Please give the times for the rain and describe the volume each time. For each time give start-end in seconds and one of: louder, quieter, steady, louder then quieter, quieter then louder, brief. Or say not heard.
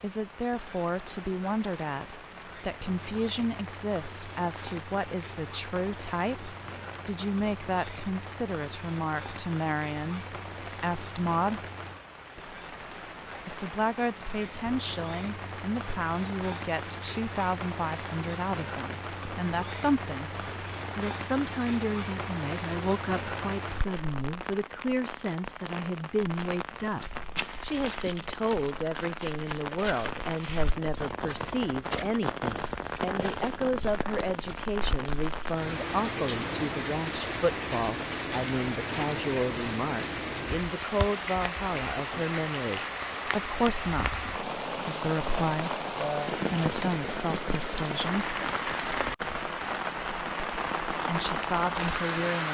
0.0-52.4 louder.